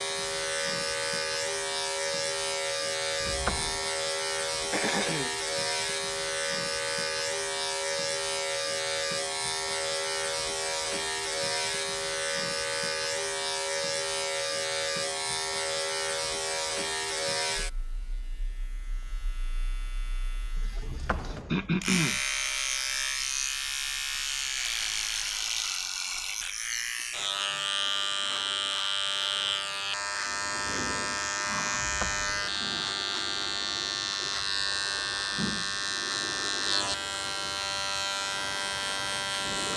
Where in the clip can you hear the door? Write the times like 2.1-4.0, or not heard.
3.2-3.9, 20.8-21.9, 31.7-32.5.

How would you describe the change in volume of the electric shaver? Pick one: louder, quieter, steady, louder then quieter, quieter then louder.
steady.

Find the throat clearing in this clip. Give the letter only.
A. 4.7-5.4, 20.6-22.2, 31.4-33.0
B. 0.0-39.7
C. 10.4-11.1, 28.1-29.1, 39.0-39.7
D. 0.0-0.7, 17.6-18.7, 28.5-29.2
A.